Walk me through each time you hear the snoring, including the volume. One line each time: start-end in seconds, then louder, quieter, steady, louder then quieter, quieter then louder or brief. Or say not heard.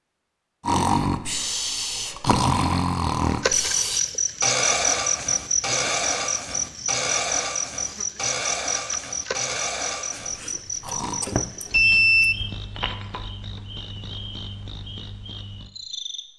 0.7-11.2 quieter.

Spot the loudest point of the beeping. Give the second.
12 s.